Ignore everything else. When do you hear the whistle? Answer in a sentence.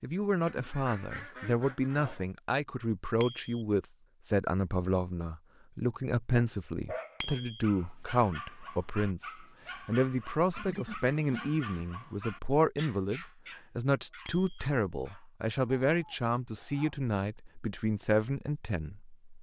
You can't hear the whistle here.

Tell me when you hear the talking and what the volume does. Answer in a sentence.
You can hear the talking from 0.0 to 19.1 s, at a steady volume.